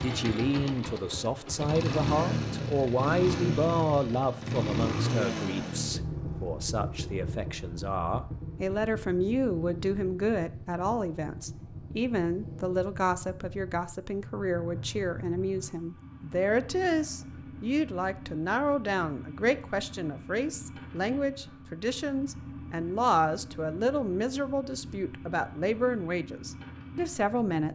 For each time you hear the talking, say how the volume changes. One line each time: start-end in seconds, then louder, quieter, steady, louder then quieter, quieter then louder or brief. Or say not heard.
0.0-27.7 steady.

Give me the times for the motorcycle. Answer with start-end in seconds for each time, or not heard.
0.0-27.7.